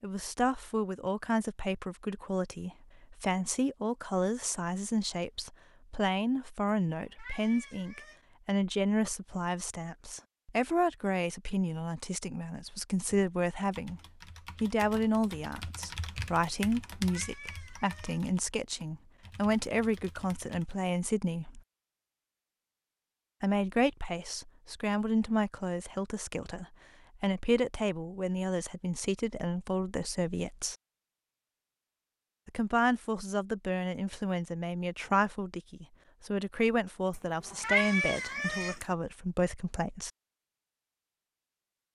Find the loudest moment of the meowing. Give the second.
38 s.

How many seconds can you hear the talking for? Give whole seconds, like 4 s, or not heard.
36 s.